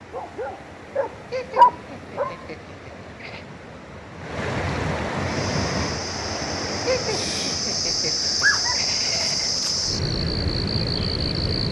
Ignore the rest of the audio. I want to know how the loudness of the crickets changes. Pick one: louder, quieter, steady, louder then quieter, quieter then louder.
louder.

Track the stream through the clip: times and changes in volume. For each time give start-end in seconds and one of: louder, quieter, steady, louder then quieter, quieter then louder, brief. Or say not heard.
0.0-11.6 louder then quieter.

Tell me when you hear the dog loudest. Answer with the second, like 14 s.
2 s.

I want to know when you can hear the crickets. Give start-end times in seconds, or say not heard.
5.2-11.6.